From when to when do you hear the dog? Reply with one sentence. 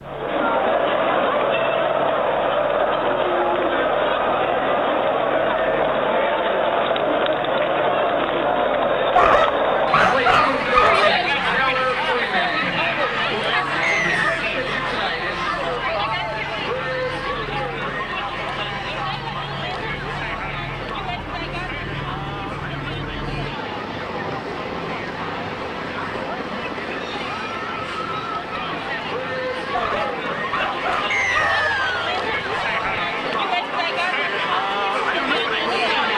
You can hear the dog from 9.1 to 11.1 s and from 29.7 to 31.7 s.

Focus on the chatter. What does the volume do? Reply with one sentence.
The loudness of the chatter goes down, then up.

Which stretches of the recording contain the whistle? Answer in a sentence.
You can hear the whistle from 13.8 to 14.4 s and from 31.1 to 32.1 s.